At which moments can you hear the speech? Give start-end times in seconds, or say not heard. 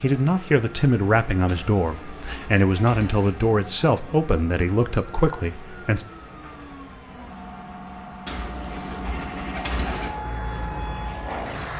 0.0-6.0.